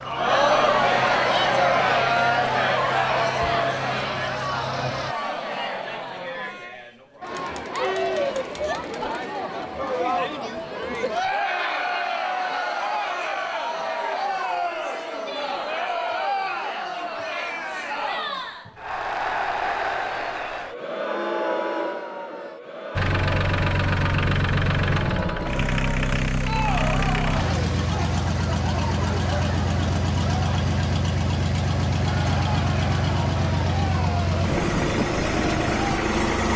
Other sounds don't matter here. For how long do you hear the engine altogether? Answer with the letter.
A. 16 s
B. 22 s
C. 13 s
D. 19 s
D.